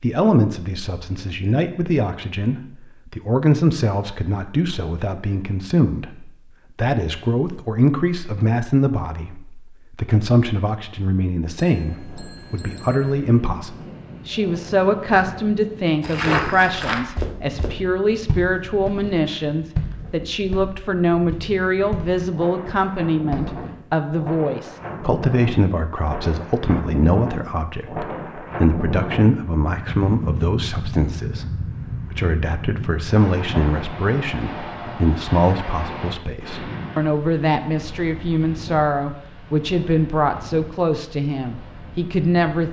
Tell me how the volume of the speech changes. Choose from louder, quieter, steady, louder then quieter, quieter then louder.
steady.